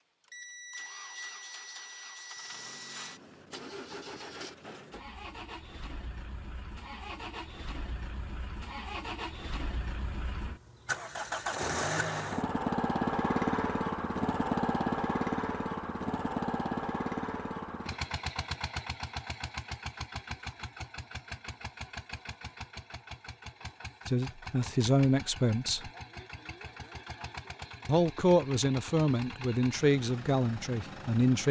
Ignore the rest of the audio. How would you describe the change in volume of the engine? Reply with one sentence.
The loudness of the engine goes up, then down.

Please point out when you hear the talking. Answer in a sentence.
The talking can be heard from 24.1 to 25.9 s and from 27.9 to 31.4 s.